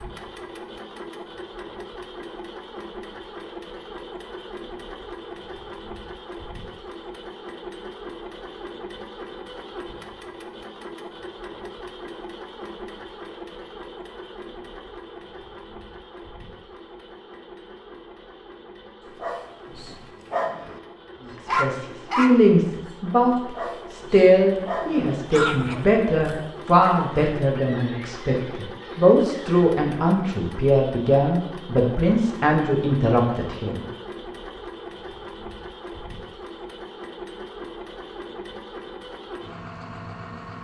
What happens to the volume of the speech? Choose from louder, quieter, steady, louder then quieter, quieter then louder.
steady.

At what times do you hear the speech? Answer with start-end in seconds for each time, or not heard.
21.4-33.9.